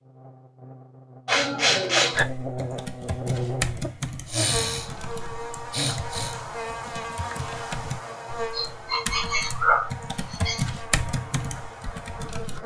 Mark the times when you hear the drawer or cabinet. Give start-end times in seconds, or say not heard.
not heard.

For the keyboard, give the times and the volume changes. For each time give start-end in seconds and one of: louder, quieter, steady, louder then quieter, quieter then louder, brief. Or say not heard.
2.1-12.6 quieter then louder.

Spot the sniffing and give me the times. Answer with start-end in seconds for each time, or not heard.
1.2-2.2, 4.2-4.9, 5.7-6.3, 8.5-10.7.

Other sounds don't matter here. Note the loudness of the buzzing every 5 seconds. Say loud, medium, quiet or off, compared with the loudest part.
loud, loud, medium.